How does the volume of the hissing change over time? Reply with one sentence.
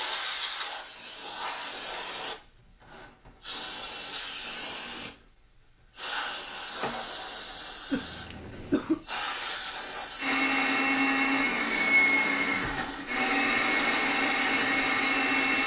The loudness of the hissing stays about the same.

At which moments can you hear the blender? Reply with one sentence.
The blender can be heard from 10.2 to 15.6 s.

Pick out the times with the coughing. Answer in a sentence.
You can hear the coughing from 7.9 to 9.1 s.